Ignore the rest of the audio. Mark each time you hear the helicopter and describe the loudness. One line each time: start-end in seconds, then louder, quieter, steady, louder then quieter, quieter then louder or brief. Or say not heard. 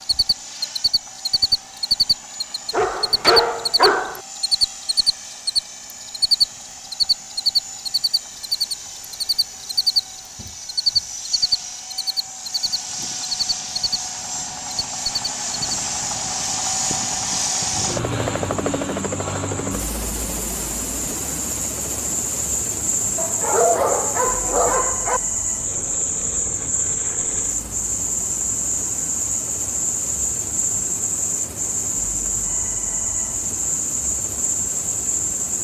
0.0-35.5 louder then quieter.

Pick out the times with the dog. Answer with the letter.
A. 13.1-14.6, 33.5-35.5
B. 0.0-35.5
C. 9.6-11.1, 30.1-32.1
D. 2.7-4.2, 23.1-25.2
D.